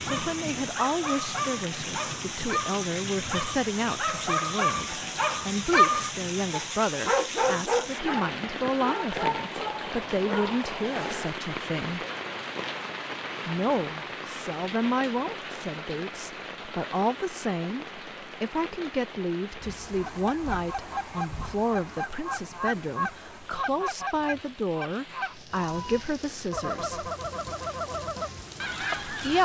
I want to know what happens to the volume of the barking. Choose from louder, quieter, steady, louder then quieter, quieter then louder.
louder then quieter.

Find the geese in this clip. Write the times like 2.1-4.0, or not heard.
19.8-29.4.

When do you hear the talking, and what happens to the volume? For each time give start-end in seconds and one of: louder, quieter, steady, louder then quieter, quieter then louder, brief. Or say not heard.
0.1-12.1 steady
13.4-27.1 steady
28.9-29.4 brief.